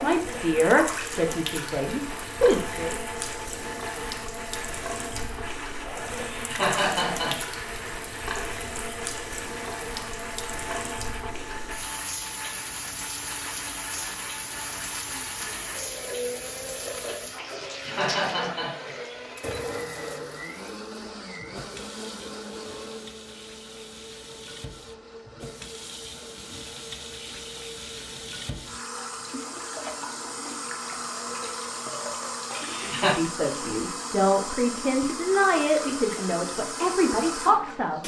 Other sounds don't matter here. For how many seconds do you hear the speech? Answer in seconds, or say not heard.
8 s.